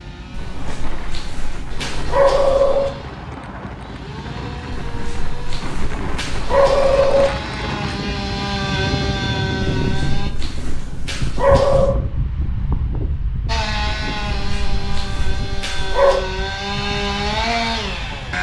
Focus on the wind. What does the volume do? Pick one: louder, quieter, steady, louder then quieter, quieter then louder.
louder then quieter.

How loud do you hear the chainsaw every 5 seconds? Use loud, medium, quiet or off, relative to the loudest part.
quiet, loud, loud, loud.